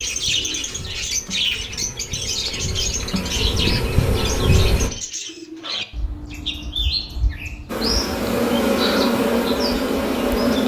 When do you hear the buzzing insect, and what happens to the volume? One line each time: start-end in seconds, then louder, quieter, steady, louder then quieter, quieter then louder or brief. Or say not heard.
0.0-4.9 louder
7.7-10.6 brief.